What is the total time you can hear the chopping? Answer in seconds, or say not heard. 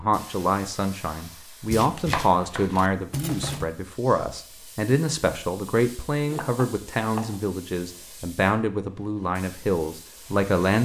3 s.